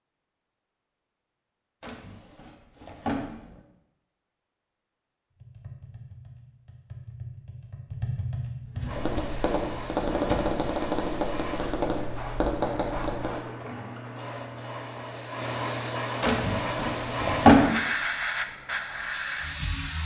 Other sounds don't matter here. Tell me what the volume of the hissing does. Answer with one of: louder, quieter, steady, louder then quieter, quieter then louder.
louder.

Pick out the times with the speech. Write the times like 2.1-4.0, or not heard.
not heard.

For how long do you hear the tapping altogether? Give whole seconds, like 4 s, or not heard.
8 s.